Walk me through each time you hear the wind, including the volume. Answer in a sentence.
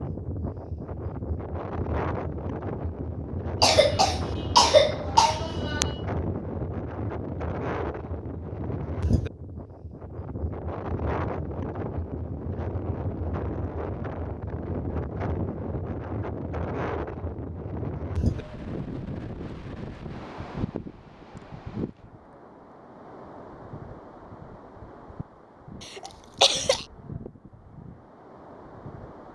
You can hear the wind from 0.0 to 29.2 s, getting quieter.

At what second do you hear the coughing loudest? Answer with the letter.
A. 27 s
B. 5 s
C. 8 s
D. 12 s
B.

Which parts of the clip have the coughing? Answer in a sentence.
The coughing can be heard from 3.6 to 6.0 s and from 25.9 to 26.9 s.